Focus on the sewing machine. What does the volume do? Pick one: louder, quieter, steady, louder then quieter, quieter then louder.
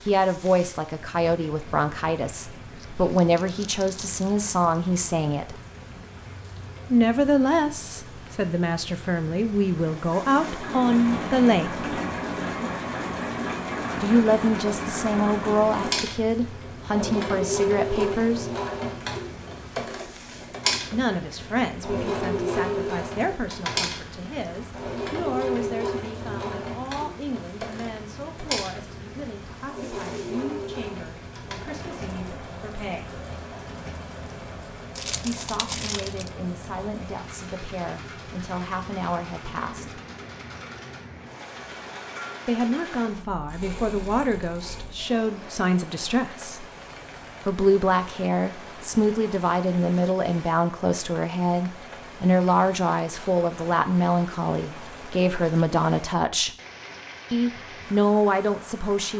quieter.